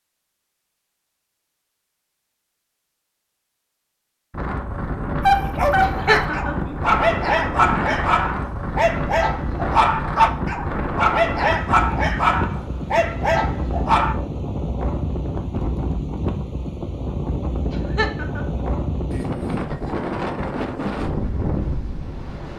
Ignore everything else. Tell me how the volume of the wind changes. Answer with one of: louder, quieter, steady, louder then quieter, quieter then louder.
steady.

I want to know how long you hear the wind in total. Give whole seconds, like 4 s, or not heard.
18 s.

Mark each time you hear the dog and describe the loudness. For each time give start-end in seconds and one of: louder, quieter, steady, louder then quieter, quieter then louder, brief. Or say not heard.
5.2-14.2 steady.